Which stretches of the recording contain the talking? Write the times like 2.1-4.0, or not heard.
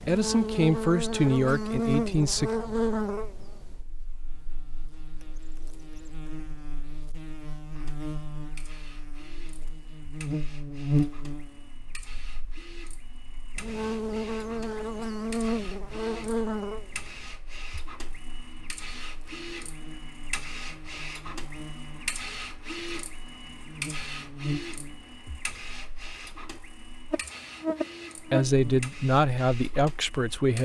0.0-2.5, 28.1-30.6.